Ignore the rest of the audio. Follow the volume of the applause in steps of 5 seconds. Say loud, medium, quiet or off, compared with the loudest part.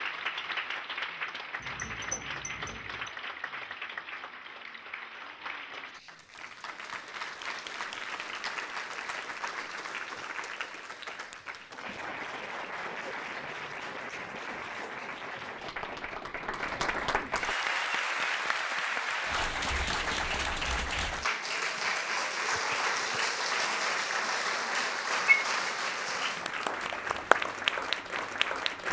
medium, medium, medium, loud, loud, loud.